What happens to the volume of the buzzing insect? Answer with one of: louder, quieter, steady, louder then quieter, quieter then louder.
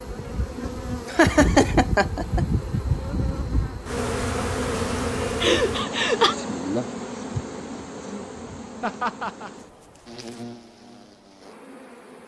quieter.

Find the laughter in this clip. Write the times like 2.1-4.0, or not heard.
1.1-2.5, 5.4-6.3, 8.8-9.5.